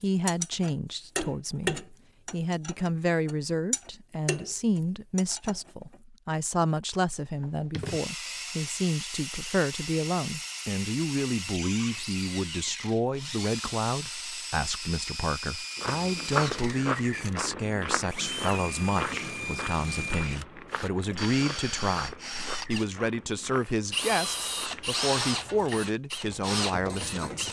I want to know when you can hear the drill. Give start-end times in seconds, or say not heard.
6.9-27.4.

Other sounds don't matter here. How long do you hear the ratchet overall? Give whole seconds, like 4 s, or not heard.
8 s.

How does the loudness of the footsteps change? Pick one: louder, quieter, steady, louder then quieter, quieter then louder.
quieter.